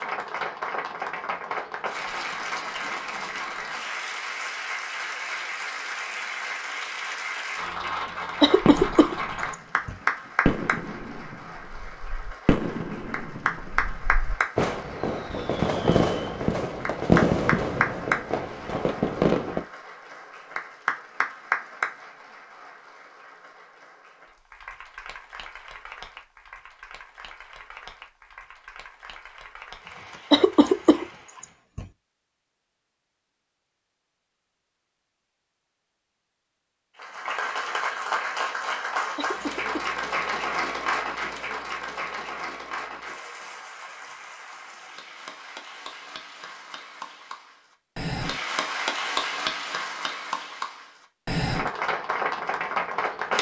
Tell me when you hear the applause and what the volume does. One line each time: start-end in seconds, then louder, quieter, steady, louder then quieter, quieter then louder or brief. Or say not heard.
0.0-31.6 quieter
37.0-53.3 quieter then louder.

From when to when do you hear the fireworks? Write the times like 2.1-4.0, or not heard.
8.1-19.6.